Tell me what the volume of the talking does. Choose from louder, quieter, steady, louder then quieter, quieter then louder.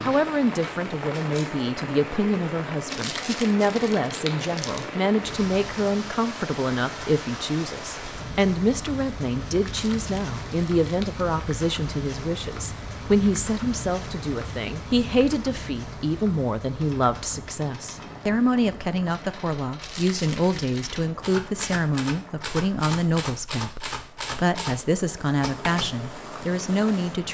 steady.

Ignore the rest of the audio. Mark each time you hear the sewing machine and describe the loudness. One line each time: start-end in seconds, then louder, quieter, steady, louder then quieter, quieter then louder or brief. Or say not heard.
not heard.